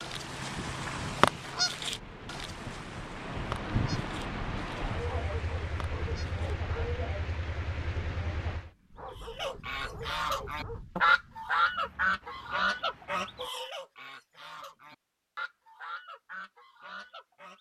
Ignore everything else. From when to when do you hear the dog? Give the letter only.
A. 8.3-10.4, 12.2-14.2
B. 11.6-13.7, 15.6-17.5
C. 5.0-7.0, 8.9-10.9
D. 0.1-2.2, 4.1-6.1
C.